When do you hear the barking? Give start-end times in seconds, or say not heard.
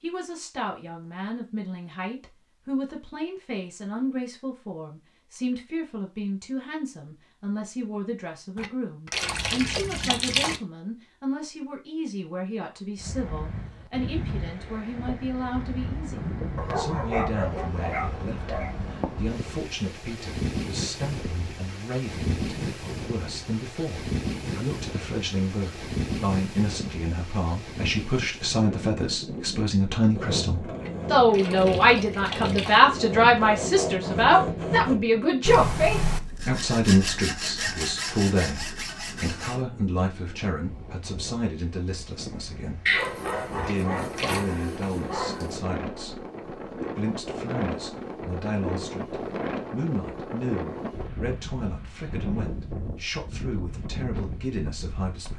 16.6-18.8, 42.9-45.6.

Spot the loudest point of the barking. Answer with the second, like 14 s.
43 s.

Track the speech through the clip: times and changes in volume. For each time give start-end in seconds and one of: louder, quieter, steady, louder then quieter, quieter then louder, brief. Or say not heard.
0.0-55.3 louder then quieter.